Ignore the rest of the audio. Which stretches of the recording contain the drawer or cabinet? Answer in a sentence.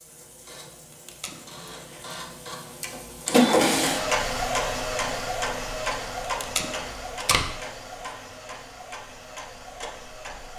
You can't hear the drawer or cabinet here.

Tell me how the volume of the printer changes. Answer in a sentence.
The loudness of the printer goes up, then down.